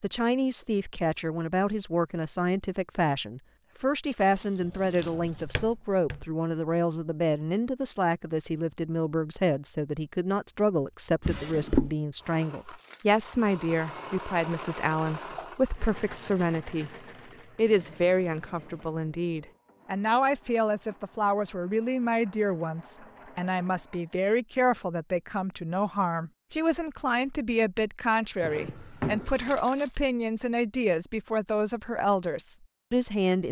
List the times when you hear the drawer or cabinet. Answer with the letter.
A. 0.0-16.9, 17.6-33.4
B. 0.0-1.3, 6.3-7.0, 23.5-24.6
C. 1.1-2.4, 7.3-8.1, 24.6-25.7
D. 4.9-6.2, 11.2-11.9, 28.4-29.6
D.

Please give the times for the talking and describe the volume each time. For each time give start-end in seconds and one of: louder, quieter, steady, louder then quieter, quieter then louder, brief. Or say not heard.
0.0-16.9 steady
17.6-33.4 steady.